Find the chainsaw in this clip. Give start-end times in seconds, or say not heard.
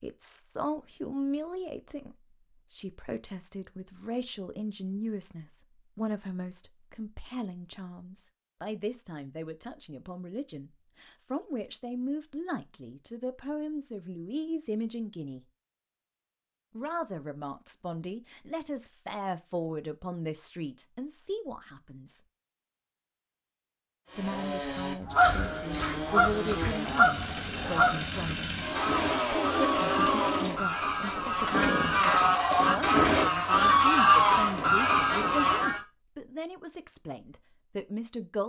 24.1-34.0.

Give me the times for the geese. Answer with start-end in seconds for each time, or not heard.
25.0-35.8.